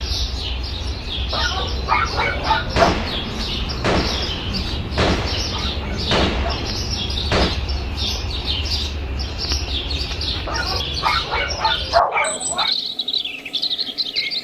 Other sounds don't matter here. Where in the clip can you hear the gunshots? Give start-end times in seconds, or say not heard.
2.7-7.6.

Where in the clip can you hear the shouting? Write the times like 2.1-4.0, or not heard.
not heard.